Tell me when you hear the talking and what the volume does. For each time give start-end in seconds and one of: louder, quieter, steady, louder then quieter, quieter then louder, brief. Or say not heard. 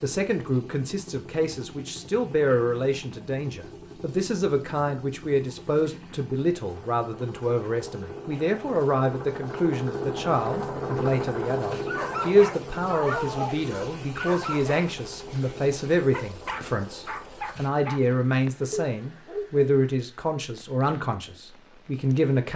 0.0-22.5 steady.